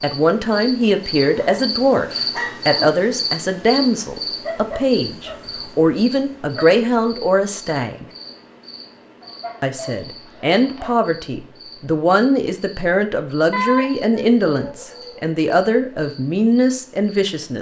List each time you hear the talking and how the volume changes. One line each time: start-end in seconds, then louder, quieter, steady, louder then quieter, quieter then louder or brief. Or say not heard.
0.0-8.1 steady
9.6-17.5 steady.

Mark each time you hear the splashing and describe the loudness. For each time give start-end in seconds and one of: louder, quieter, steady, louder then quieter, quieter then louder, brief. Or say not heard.
not heard.